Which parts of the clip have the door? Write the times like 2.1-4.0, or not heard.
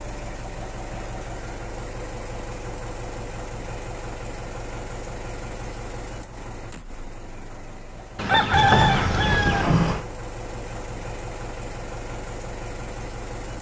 8.5-10.1.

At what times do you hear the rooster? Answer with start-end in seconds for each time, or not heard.
8.2-9.7.